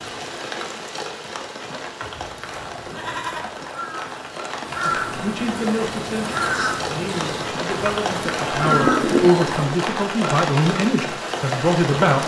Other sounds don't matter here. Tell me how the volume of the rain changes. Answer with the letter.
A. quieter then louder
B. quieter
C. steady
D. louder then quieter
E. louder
E.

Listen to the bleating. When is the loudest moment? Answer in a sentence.
The loudest moment of the bleating is at 9 seconds.